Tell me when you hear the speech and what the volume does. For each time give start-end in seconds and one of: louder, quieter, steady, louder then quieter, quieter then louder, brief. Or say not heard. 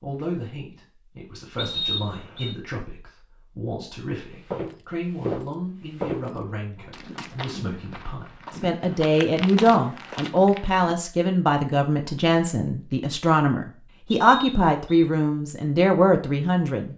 0.0-16.9 louder.